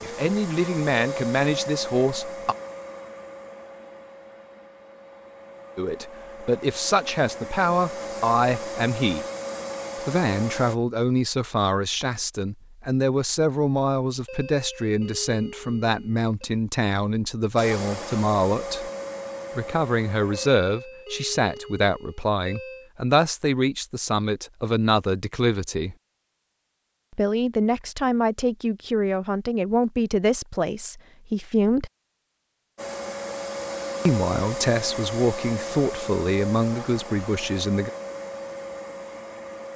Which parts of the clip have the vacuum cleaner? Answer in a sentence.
The vacuum cleaner can be heard from 0.0 to 10.8 s, from 17.6 to 20.6 s and from 32.8 to 39.7 s.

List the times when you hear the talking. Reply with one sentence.
The talking can be heard from 0.0 to 2.5 s, from 5.8 to 9.2 s, from 10.1 to 18.9 s, from 19.6 to 25.9 s, from 27.1 to 31.9 s and from 34.0 to 37.9 s.